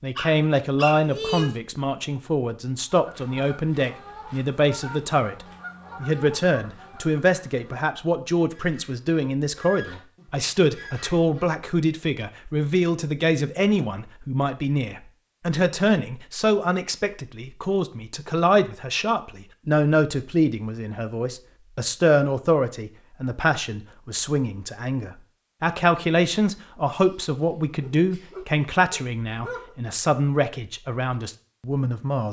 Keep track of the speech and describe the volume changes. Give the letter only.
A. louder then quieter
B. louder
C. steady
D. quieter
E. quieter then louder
C.